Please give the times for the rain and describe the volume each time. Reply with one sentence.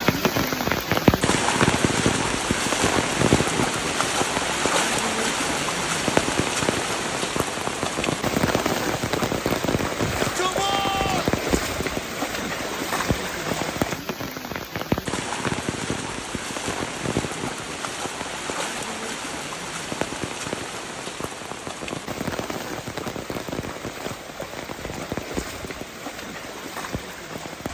The rain can be heard from 0.0 to 27.6 s, getting quieter.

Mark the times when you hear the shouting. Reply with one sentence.
The shouting can be heard from 9.9 to 11.3 s.